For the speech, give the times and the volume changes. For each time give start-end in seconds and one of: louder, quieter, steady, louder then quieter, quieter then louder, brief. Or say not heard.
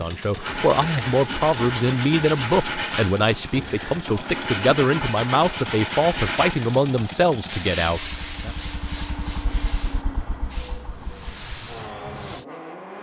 0.0-8.6 steady.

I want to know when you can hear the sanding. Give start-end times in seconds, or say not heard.
0.4-12.4.